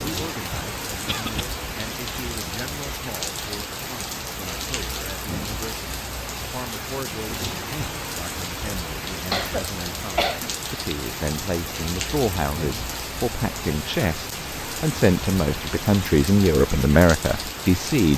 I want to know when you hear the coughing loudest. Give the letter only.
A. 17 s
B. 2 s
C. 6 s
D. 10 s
D.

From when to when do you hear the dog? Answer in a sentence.
The dog can't be heard in this clip.